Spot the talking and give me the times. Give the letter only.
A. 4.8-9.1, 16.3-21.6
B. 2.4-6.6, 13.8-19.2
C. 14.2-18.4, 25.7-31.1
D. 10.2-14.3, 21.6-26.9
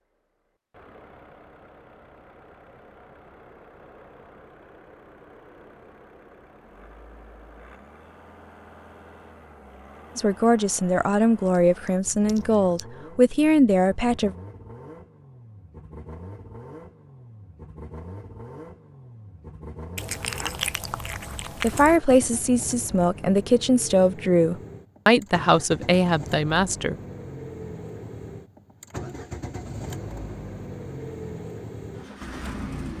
D.